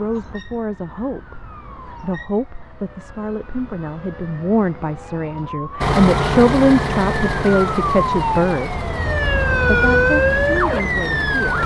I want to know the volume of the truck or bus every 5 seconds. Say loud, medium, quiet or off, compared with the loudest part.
off, loud, medium.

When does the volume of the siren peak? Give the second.
10 s.